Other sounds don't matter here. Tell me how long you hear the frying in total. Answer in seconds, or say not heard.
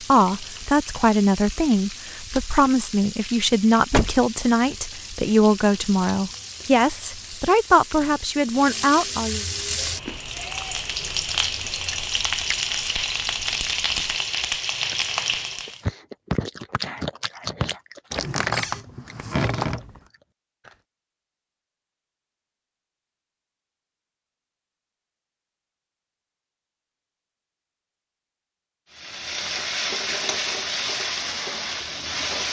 19 s.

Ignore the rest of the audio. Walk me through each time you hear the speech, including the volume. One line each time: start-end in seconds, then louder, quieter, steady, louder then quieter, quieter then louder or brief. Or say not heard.
0.1-9.4 steady.